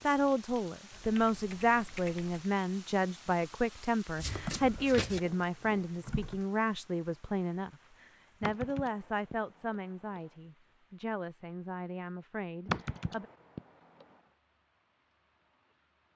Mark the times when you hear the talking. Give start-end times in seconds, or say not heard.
0.0-13.2.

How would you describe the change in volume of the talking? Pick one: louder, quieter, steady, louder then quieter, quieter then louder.
quieter.